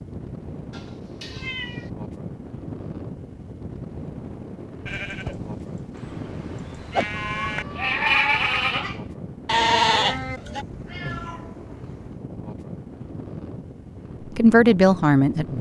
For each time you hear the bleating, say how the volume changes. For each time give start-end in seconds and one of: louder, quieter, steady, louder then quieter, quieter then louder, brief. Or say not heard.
4.8-10.7 louder.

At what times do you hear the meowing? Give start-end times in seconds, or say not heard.
0.7-1.9, 5.9-8.0, 10.4-12.2.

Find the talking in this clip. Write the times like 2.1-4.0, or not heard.
14.3-15.5.